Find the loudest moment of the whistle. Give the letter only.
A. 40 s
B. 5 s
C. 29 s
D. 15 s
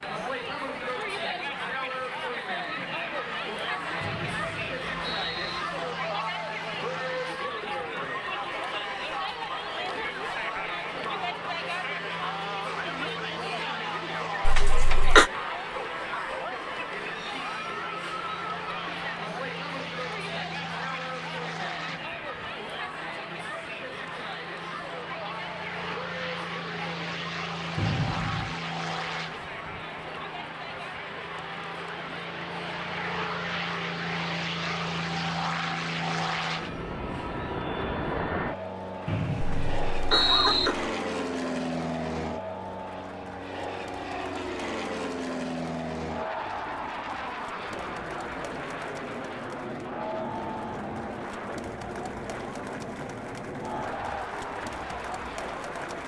A.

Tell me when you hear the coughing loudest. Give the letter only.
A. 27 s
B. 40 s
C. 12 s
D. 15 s
D.